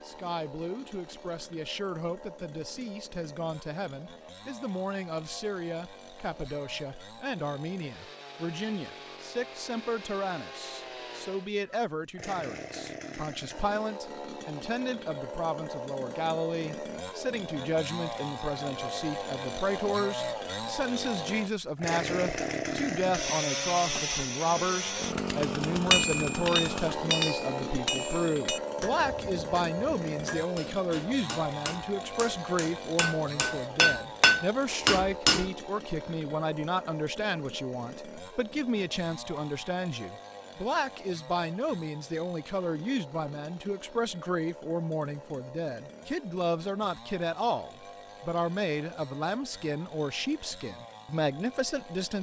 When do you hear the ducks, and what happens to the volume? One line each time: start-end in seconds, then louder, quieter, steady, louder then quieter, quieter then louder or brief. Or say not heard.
not heard.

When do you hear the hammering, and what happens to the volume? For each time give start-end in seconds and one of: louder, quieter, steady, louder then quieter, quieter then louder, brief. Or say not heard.
25.7-35.5 quieter then louder.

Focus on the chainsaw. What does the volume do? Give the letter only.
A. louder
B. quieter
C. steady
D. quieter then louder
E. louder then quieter
E.